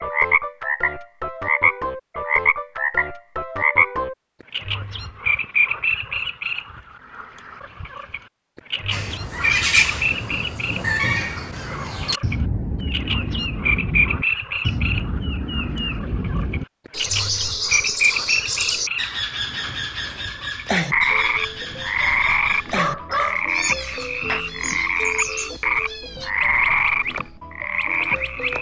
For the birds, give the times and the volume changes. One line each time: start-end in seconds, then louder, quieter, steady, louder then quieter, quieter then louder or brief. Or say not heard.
8.9-28.5 quieter.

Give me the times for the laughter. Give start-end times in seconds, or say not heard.
not heard.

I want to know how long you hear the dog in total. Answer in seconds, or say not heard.
2 s.